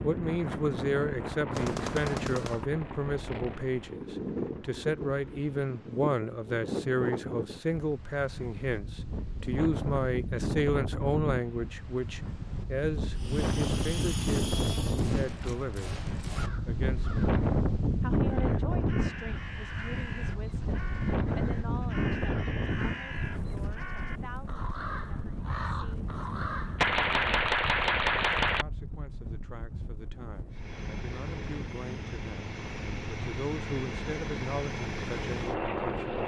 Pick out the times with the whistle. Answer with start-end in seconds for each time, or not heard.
not heard.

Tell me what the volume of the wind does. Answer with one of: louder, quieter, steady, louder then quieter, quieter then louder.
louder then quieter.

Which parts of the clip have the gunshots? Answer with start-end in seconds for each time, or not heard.
1.5-2.6, 14.9-16.5, 26.8-28.6.